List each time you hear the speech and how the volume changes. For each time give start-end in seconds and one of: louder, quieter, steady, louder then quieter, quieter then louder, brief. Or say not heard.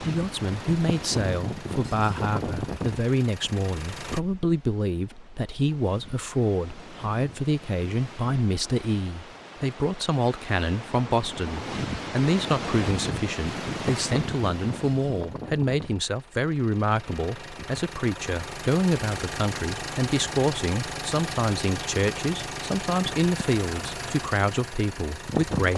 0.0-25.7 steady.